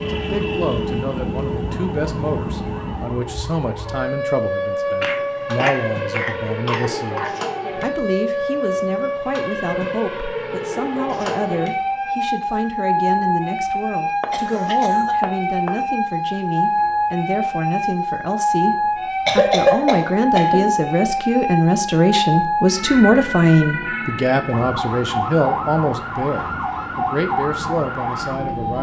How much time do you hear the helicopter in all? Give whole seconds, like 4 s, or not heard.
3 s.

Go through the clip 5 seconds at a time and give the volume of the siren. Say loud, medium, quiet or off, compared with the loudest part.
medium, loud, loud, loud, loud, loud.